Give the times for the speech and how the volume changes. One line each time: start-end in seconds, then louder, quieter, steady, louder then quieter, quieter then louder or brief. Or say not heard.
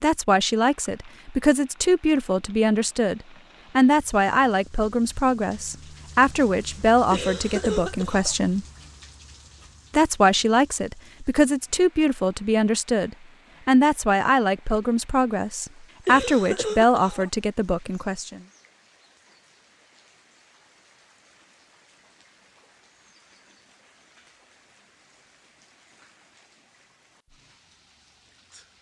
0.0-8.7 steady
9.9-18.4 steady.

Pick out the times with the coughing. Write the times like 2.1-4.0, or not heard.
7.1-8.3, 16.1-17.3.